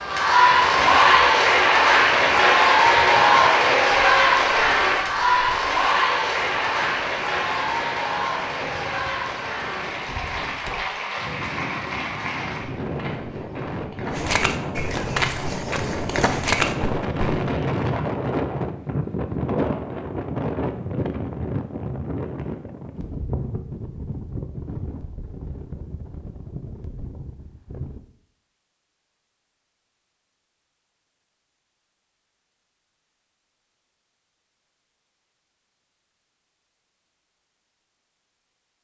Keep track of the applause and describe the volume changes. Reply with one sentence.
The loudness of the applause goes down.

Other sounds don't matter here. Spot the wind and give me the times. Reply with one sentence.
You can hear the wind from 0.0 to 28.0 s.